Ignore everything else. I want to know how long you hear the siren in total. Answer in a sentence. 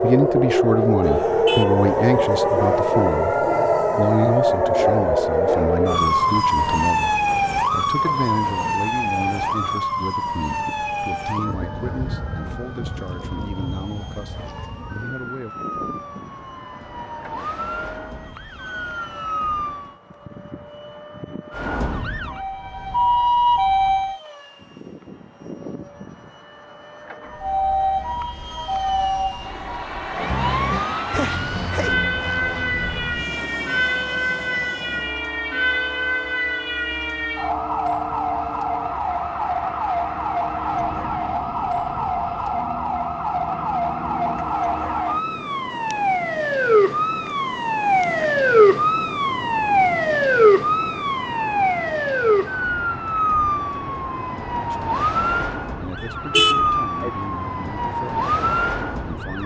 You can hear the siren for 55 seconds altogether.